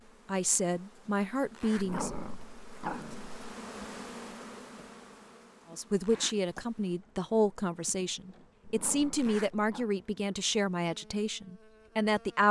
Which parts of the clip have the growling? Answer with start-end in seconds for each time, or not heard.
1.8-3.4, 8.7-9.9.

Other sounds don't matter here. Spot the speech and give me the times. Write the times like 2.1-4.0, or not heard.
0.2-2.1, 5.7-12.4.